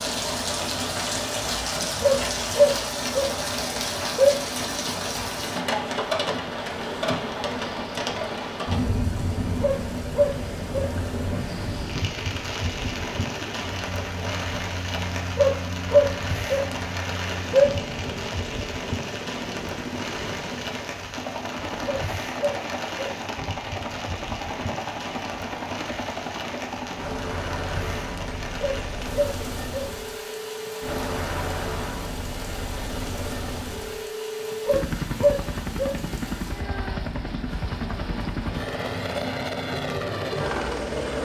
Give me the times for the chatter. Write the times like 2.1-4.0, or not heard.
not heard.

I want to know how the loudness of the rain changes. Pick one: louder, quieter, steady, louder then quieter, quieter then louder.
quieter.